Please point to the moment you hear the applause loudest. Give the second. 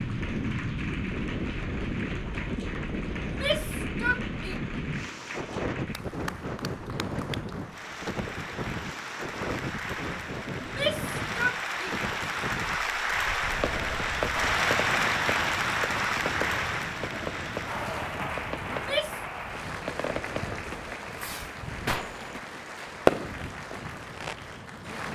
15 s.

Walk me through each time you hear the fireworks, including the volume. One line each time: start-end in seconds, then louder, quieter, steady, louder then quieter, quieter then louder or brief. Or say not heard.
13.4-24.4 louder.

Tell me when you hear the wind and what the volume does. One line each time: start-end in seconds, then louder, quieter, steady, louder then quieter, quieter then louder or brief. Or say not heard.
0.0-25.0 quieter.